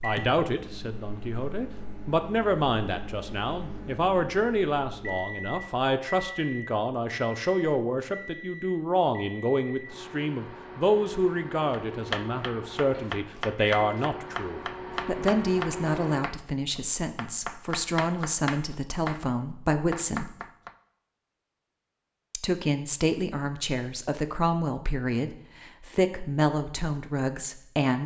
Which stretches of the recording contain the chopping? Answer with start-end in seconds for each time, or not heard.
11.7-20.8.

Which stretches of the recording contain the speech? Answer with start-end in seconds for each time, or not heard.
0.0-20.4, 22.3-28.0.